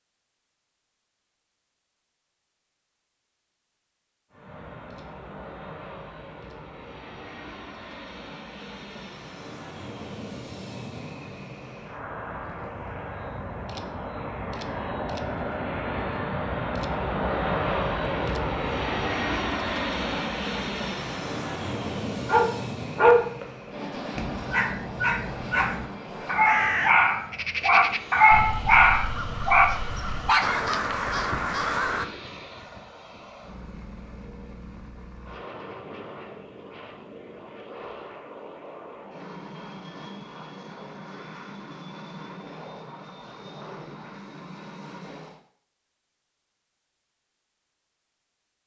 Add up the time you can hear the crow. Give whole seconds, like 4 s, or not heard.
6 s.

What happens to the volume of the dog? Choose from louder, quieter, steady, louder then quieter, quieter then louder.
quieter then louder.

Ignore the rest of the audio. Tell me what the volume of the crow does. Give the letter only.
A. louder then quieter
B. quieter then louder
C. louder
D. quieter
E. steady
B.